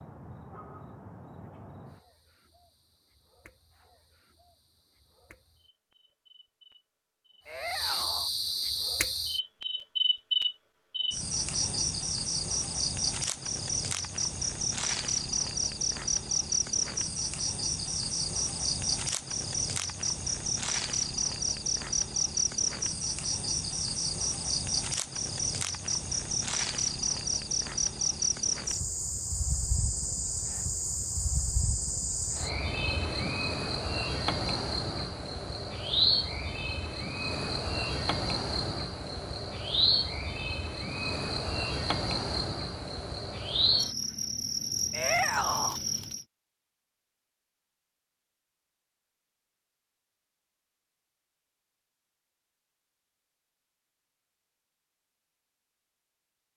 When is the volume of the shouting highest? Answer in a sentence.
The loudest moment of the shouting is at 45 seconds.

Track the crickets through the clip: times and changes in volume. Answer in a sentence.
The crickets can be heard from 0.0 to 46.2 s, getting louder.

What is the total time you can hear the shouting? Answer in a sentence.
You can hear the shouting for 2 seconds altogether.